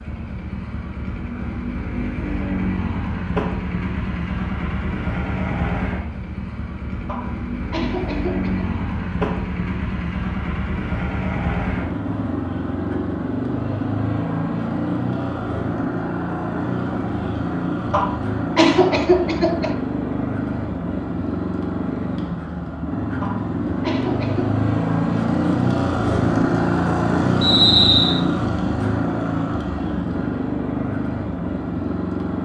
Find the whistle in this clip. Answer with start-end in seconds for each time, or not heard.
27.4-28.2.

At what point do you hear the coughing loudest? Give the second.
19 s.